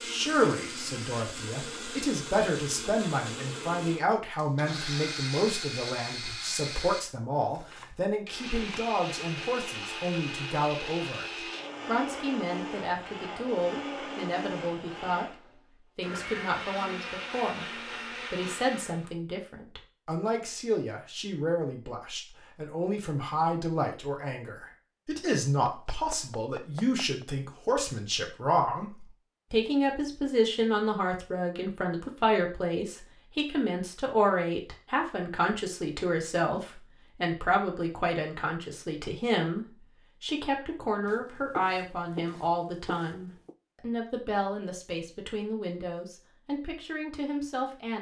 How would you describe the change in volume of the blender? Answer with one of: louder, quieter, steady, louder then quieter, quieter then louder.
steady.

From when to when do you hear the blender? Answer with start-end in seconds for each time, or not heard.
0.0-19.1.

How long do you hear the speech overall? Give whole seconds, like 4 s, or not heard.
47 s.